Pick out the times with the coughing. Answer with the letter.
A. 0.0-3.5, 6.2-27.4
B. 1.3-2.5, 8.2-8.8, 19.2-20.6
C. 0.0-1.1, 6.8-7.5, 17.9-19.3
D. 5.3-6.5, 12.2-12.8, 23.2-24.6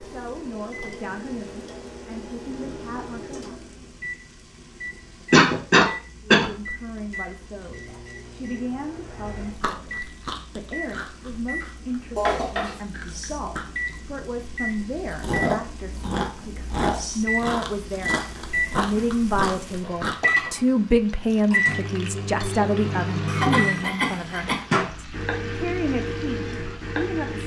D.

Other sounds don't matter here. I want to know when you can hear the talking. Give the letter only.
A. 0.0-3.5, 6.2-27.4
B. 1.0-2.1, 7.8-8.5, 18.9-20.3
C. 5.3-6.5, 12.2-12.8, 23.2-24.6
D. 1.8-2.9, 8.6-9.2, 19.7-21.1
A.